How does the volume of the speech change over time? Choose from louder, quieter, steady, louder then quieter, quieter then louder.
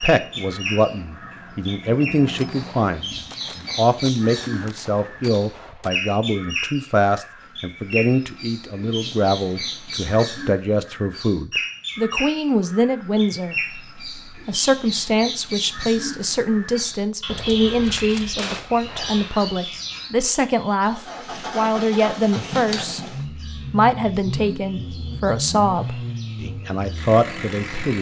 steady.